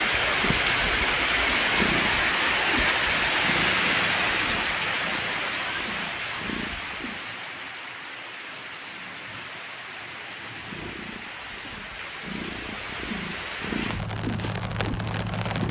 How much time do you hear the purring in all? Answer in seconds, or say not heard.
12 s.